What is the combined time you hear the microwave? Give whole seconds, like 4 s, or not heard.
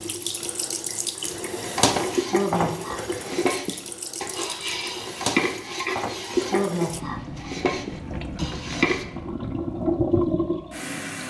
not heard.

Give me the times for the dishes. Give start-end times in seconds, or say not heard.
2.1-9.1.